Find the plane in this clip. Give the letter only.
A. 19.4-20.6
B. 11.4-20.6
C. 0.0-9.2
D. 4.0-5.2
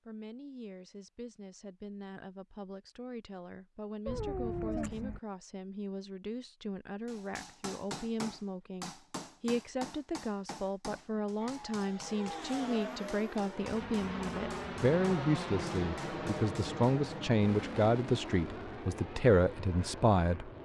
B.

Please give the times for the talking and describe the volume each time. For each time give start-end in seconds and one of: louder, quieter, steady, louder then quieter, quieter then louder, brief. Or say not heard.
0.1-20.5 louder.